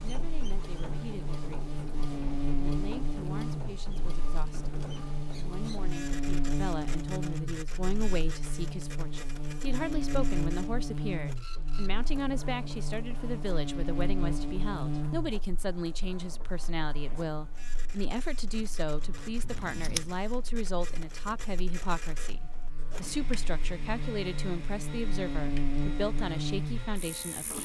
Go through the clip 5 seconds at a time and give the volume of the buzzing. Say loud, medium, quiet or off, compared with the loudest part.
loud, loud, loud, medium, medium, loud.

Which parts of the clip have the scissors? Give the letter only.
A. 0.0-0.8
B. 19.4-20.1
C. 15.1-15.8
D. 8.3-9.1
B.